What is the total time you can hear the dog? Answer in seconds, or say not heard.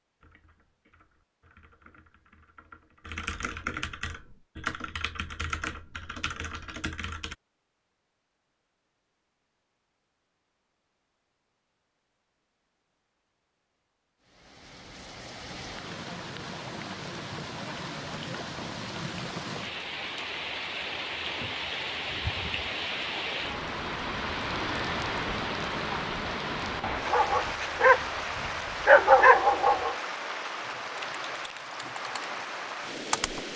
3 s.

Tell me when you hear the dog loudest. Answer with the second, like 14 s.
29 s.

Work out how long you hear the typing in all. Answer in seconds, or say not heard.
10 s.